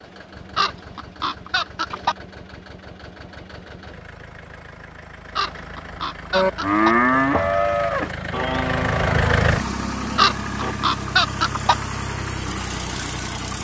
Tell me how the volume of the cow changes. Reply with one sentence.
The volume of the cow goes down.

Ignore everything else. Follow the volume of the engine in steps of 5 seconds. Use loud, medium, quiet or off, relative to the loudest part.
quiet, loud, loud.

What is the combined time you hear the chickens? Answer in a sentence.
The chickens can be heard for 5 seconds in total.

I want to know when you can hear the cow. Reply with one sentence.
The cow can be heard from 6.3 to 10.8 s.